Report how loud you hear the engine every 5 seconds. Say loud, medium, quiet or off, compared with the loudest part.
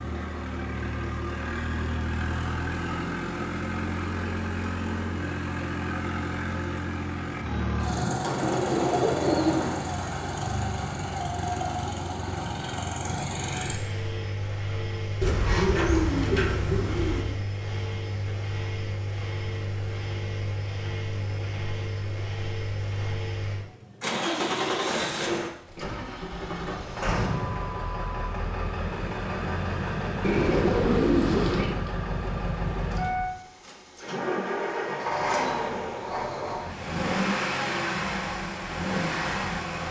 loud, loud, loud, medium, loud, loud, loud, loud.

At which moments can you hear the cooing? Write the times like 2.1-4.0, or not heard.
8.2-9.8, 15.2-17.2, 30.2-31.8.